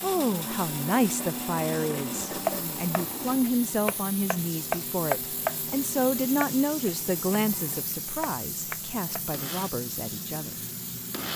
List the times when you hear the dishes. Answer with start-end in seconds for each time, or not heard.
not heard.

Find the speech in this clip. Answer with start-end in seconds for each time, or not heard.
0.0-10.6.